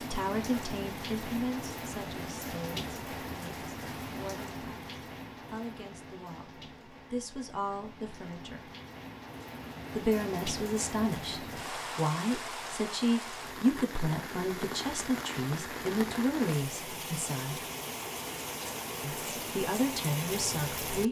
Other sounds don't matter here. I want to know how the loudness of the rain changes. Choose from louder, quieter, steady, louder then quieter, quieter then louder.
quieter then louder.